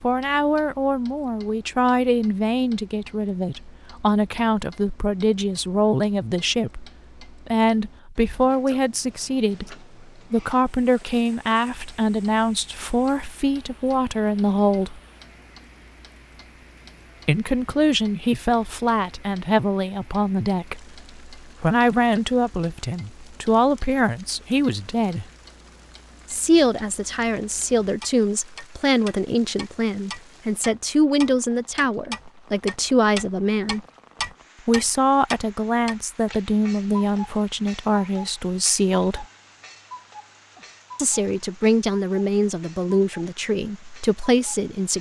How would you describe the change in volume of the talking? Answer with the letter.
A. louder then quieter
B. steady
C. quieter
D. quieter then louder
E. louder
B.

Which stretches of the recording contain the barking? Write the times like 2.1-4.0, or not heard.
not heard.